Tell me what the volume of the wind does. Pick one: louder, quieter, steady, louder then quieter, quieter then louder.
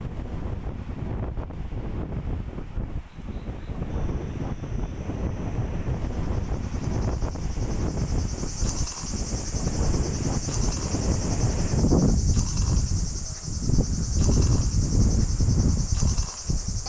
louder.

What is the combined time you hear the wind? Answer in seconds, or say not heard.
17 s.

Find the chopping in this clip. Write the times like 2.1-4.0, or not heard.
not heard.